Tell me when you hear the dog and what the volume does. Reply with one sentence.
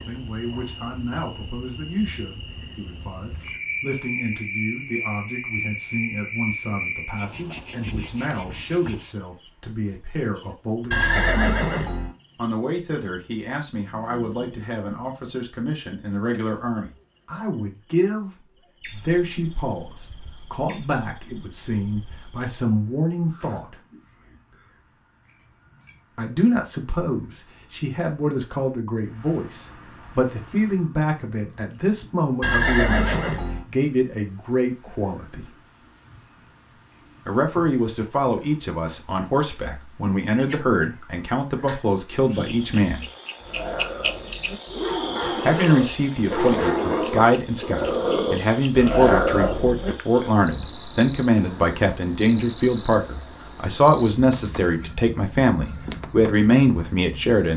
You can hear the dog from 43.4 to 49.9 s, getting louder.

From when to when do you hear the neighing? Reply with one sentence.
You can hear the neighing from 10.9 to 12.1 s and from 32.4 to 33.6 s.